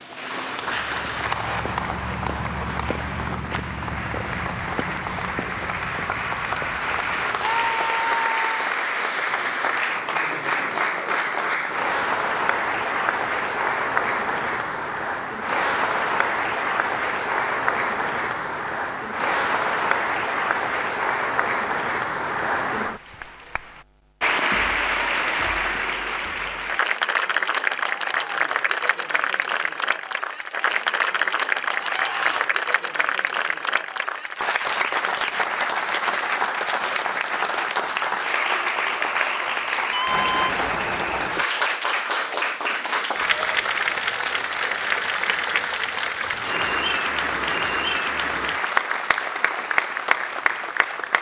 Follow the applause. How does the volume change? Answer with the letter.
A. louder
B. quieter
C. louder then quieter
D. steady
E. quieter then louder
D.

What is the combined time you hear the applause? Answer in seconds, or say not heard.
51 s.